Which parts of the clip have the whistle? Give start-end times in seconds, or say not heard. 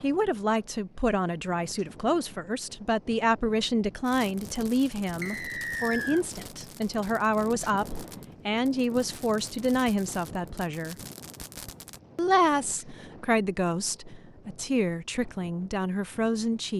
5.2-6.2.